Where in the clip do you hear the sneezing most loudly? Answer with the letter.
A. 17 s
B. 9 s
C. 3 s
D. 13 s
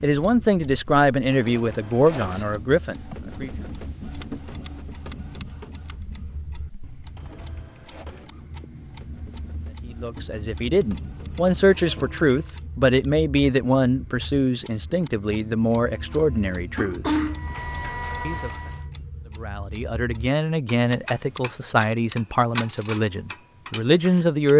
A.